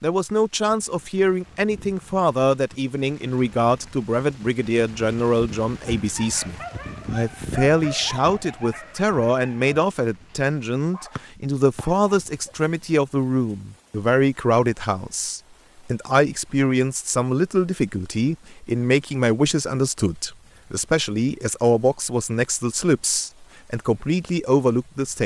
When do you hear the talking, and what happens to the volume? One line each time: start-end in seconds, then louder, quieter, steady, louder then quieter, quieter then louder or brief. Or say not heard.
0.0-25.2 steady.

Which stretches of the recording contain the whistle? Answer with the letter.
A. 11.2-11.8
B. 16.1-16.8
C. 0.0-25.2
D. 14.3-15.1
A.